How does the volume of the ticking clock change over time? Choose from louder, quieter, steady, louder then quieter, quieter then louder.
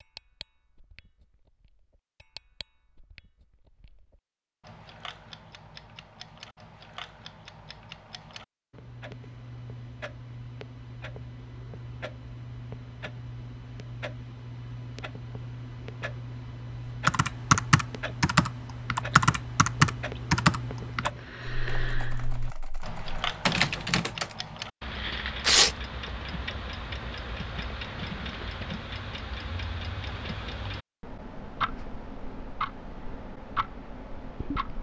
louder.